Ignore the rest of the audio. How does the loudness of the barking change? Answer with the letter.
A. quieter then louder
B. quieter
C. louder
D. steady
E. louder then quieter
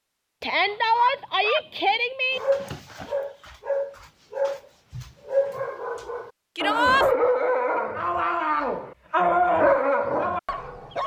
C.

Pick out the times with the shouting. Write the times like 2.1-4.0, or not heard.
0.4-2.4, 6.5-7.0.